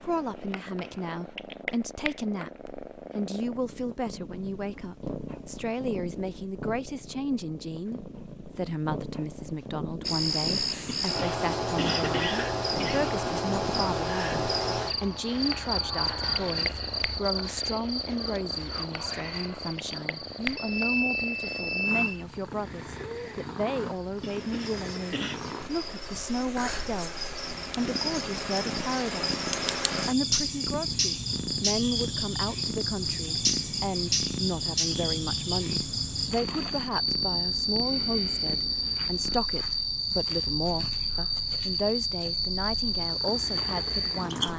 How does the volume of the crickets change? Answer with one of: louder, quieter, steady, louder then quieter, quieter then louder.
quieter then louder.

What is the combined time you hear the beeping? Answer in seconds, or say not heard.
2 s.